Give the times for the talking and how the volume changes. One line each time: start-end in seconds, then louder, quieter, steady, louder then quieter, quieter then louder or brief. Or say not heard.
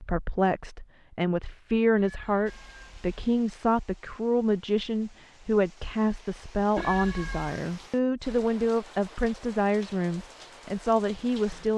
0.0-11.7 steady.